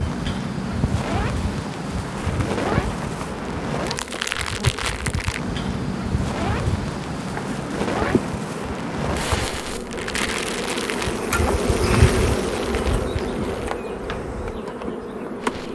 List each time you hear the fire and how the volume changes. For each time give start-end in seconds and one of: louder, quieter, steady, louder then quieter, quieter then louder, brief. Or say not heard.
0.0-15.7 quieter.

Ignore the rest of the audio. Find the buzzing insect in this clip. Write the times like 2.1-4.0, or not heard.
0.0-15.7.